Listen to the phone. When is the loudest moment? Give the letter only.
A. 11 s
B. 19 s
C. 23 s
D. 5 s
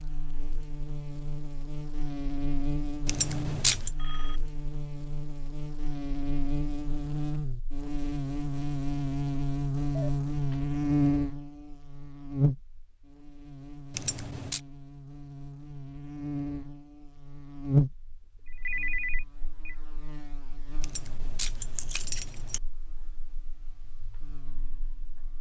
B.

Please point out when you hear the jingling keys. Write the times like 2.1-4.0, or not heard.
3.0-3.9, 13.9-14.6, 20.8-22.6.